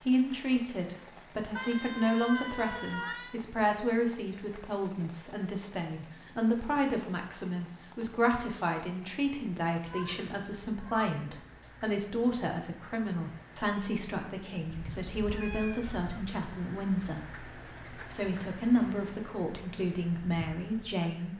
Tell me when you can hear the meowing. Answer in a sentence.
You can hear the meowing from 1.6 to 3.4 s, from 9.8 to 11.1 s and from 14.7 to 16.4 s.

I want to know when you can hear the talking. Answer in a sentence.
The talking can be heard from 0.0 to 21.3 s.